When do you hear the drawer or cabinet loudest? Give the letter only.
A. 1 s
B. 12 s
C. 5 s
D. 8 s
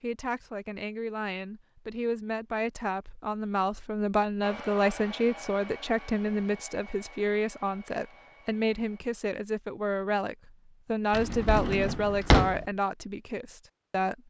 B.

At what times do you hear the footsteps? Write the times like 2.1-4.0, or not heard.
not heard.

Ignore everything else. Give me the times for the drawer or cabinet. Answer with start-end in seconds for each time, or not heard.
11.1-12.7.